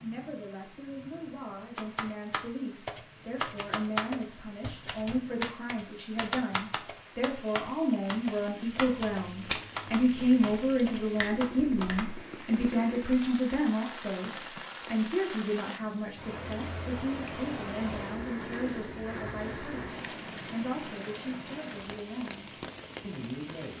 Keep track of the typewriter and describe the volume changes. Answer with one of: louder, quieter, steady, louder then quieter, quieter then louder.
quieter.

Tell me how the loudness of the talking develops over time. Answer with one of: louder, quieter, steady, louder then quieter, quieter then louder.
louder then quieter.